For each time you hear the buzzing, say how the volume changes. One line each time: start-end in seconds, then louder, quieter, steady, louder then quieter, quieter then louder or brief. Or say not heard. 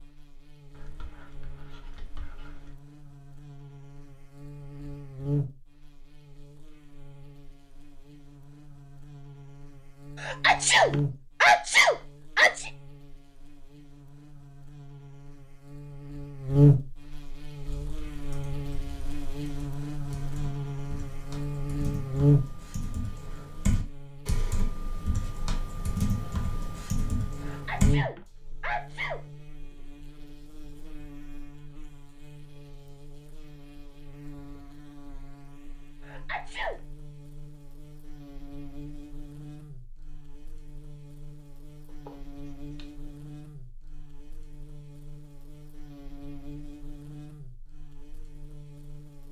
0.0-49.2 louder then quieter.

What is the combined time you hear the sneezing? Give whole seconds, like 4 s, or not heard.
5 s.